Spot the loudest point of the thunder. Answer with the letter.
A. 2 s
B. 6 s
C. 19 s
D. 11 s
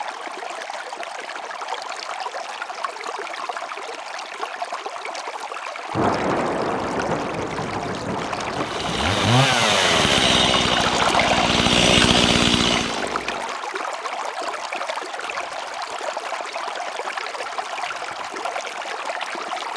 B.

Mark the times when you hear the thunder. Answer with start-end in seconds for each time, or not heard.
5.9-9.4.